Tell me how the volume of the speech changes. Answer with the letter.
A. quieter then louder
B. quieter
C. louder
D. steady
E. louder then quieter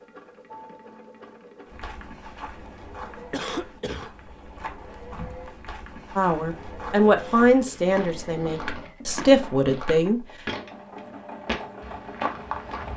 A.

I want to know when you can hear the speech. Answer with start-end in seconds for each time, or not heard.
6.2-10.2.